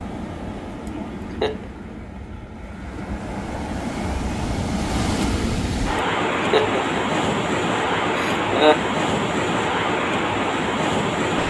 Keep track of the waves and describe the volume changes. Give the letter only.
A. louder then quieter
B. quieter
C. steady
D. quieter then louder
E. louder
E.